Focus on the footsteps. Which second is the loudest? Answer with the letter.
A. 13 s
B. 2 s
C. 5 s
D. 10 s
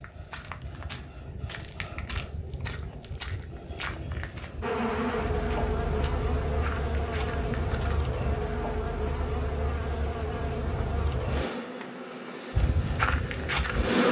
A.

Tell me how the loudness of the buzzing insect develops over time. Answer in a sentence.
The loudness of the buzzing insect goes down.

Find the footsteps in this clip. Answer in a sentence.
You can hear the footsteps from 0.0 to 8.0 s and from 12.5 to 14.0 s.